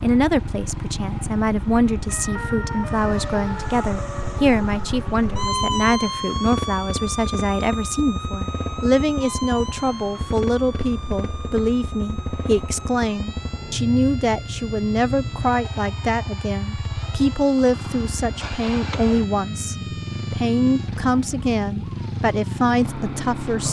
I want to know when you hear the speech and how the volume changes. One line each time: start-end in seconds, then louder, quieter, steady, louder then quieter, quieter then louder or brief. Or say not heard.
0.0-23.6 steady.